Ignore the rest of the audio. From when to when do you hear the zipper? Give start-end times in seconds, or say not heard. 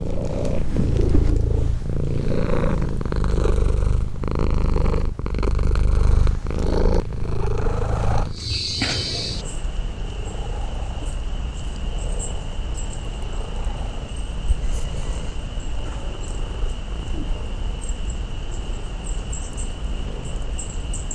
not heard.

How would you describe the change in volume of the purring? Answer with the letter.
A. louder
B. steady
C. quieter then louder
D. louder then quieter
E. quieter
E.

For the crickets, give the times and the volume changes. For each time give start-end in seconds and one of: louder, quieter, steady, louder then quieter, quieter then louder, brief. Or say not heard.
8.2-21.1 quieter.